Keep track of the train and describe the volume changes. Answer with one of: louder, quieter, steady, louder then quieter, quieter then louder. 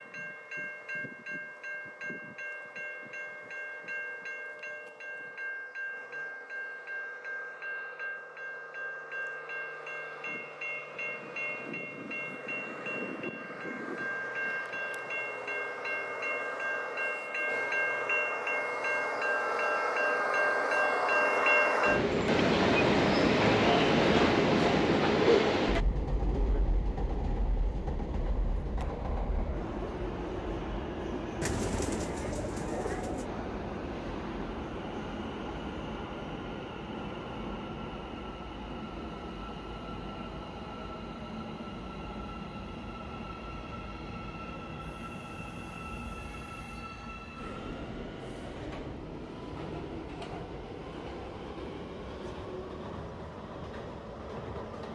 louder then quieter.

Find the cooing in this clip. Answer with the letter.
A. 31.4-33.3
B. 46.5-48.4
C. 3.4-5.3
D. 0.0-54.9
A.